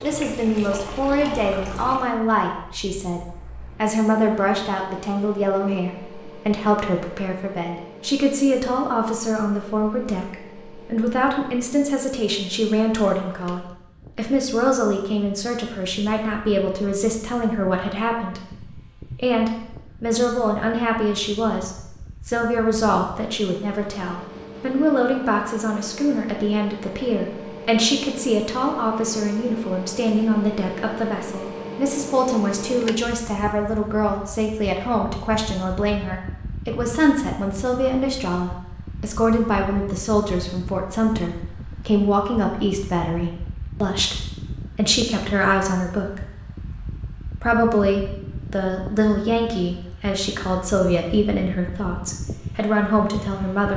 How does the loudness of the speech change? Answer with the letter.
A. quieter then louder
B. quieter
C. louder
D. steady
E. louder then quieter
D.